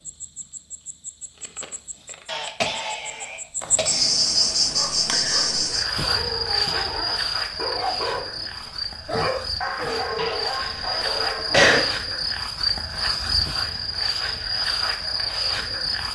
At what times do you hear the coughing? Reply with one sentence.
The coughing can be heard from 2.2 to 4.0 s and from 10.2 to 11.8 s.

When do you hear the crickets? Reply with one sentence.
The crickets can be heard from 0.0 to 16.1 s.